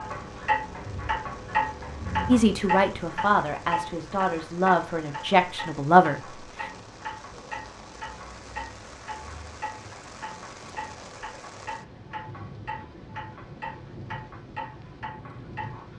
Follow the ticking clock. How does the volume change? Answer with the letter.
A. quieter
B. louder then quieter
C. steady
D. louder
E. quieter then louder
A.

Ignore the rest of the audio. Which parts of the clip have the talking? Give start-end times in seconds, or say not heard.
2.2-6.3.